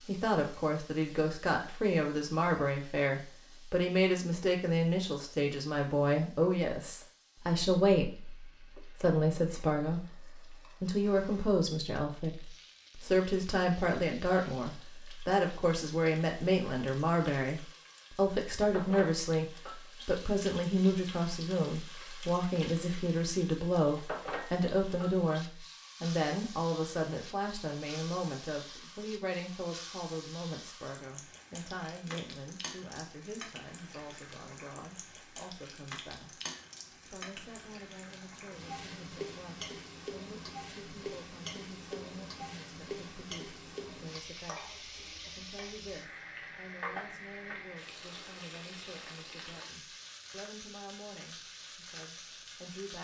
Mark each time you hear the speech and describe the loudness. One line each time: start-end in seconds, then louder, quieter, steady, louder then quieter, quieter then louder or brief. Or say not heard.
0.1-52.9 quieter.